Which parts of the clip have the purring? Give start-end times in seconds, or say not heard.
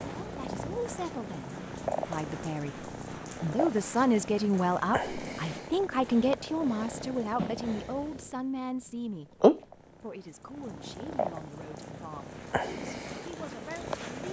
0.0-8.3, 9.4-14.2.